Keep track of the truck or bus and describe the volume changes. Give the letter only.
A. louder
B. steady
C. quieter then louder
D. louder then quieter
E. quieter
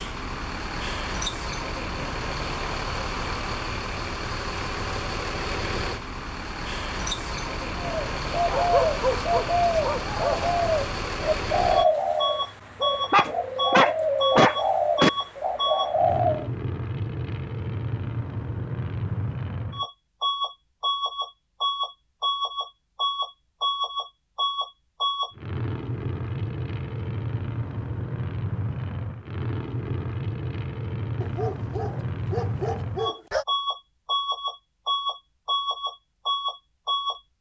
B.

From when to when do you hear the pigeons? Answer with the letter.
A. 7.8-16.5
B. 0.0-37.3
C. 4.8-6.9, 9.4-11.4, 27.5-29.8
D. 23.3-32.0
A.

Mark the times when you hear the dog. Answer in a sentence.
The dog can be heard from 8.4 to 10.6 s, from 13.1 to 15.1 s and from 31.2 to 33.5 s.